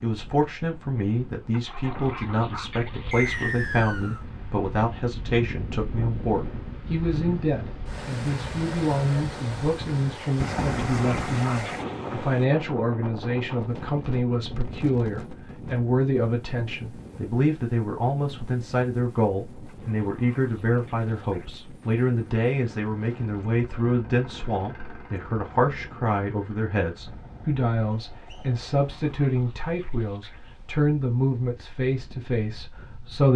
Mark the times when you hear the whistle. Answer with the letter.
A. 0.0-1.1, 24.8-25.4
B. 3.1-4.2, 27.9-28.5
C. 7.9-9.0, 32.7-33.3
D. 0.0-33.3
B.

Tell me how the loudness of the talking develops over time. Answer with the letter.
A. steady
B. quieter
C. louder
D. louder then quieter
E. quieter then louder
A.